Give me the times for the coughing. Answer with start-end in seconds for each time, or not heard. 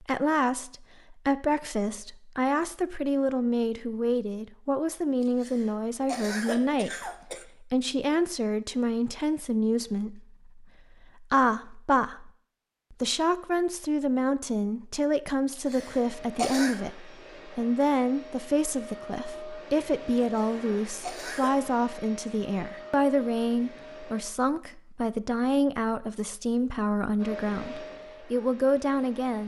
5.2-7.5, 15.5-16.8, 20.1-21.6.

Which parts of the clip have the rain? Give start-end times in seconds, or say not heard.
not heard.